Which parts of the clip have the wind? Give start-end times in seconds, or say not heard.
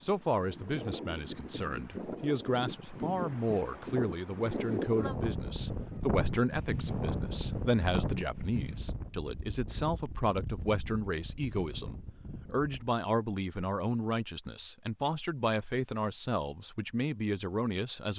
0.0-12.9.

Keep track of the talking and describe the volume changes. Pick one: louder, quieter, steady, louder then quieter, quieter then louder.
steady.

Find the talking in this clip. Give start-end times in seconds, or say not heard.
0.0-18.1.